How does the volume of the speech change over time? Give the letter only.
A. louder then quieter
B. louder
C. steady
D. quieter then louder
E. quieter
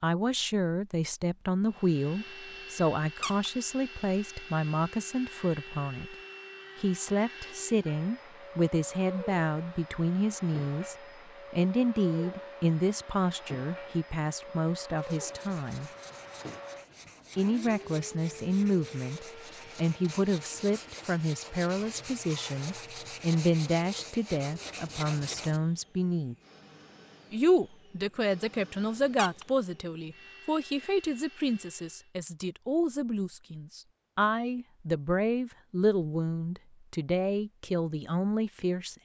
C.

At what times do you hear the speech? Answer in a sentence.
You can hear the speech from 0.0 to 6.2 s, from 6.8 to 15.9 s, from 17.4 to 26.4 s and from 27.3 to 39.0 s.